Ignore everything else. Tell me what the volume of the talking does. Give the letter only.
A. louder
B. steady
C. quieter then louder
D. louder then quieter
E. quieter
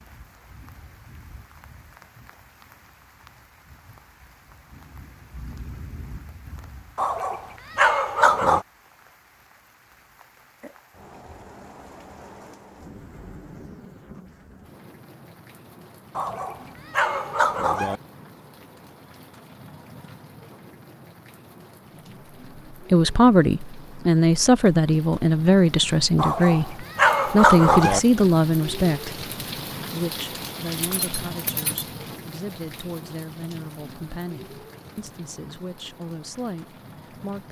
E.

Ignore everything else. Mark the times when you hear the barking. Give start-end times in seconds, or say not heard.
7.0-8.7, 16.1-18.0, 26.1-28.0.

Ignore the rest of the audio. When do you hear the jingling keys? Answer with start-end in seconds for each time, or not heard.
30.8-31.9.